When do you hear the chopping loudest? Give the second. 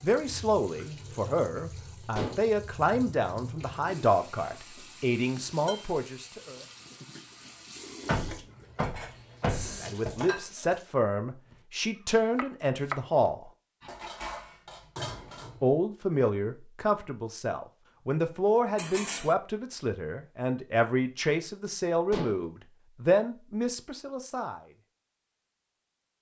13 s.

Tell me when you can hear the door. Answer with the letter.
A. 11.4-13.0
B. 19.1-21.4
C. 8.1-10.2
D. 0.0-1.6
C.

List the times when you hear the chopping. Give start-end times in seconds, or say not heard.
11.4-13.0.